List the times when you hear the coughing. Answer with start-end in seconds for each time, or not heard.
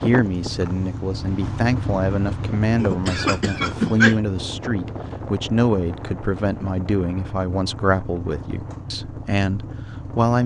2.8-4.2.